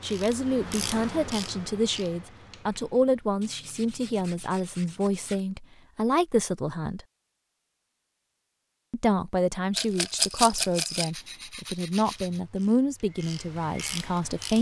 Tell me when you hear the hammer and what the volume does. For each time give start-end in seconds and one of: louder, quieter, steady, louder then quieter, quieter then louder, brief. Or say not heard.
not heard.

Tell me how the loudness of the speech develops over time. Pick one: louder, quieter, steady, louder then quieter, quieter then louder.
steady.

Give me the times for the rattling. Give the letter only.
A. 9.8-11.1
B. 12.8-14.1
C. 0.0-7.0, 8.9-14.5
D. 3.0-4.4
A.